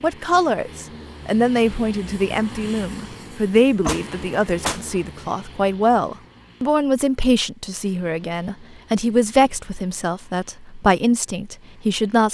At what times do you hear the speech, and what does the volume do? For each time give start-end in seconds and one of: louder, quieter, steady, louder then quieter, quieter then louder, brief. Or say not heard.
0.0-12.2 steady.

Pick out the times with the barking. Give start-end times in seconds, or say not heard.
not heard.